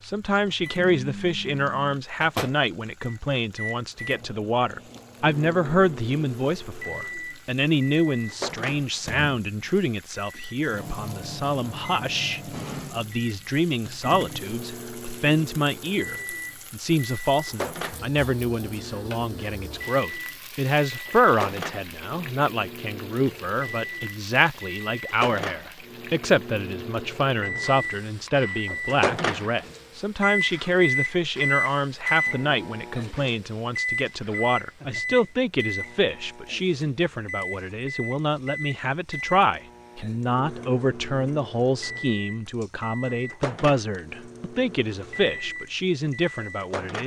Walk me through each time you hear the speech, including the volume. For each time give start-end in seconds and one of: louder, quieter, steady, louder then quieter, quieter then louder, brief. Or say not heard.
0.0-47.0 steady.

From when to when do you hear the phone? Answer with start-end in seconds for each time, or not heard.
not heard.